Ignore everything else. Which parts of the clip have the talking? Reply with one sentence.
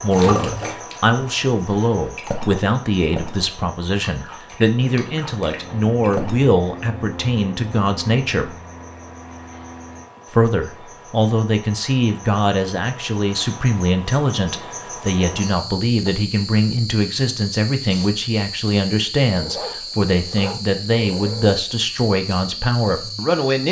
You can hear the talking from 0.0 to 8.6 s and from 10.3 to 23.6 s.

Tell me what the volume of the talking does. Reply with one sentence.
The loudness of the talking stays about the same.